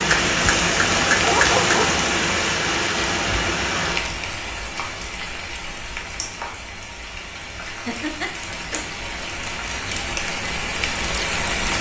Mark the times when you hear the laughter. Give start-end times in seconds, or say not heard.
7.7-8.8.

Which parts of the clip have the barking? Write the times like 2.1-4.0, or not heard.
1.2-2.0.